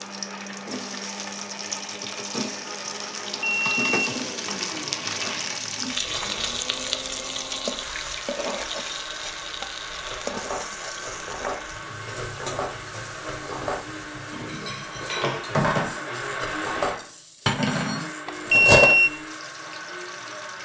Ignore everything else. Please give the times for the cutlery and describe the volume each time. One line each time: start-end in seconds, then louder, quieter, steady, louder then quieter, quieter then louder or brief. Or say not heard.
10.0-18.9 louder.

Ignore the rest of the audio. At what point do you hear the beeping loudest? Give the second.
19 s.